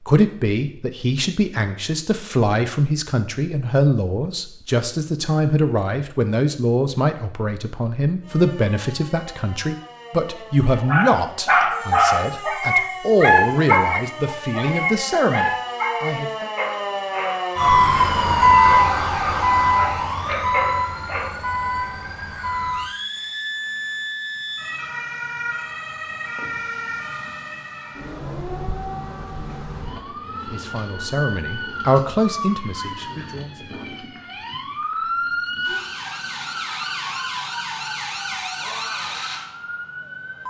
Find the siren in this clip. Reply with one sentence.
The siren can be heard from 8.2 to 40.4 s.